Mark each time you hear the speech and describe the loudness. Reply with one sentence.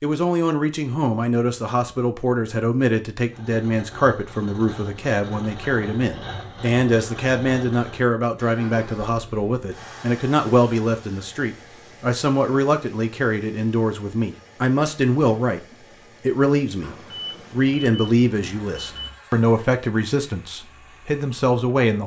You can hear the speech from 0.0 to 22.0 s, at a steady volume.